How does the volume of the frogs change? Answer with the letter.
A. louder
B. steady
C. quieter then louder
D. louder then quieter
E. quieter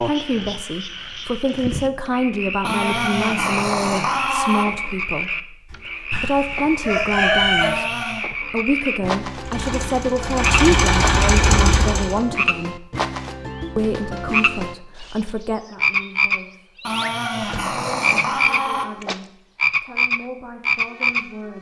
A.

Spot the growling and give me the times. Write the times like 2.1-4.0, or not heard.
2.6-4.7, 7.6-8.3, 16.9-18.9.